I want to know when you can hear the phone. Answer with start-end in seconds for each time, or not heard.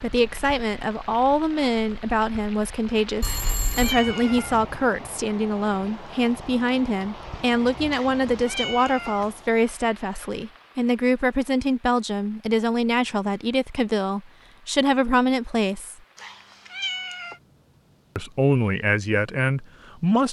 3.2-4.0.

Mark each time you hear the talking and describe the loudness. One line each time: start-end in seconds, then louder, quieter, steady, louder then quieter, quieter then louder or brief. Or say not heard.
0.0-15.9 steady
18.1-20.2 brief.